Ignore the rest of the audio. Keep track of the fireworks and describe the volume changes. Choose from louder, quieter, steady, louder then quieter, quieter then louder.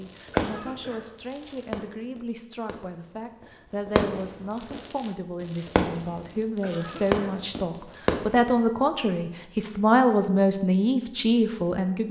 quieter then louder.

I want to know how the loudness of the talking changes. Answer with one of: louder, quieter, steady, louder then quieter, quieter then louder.
louder.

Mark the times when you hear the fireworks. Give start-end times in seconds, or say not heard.
0.0-8.5.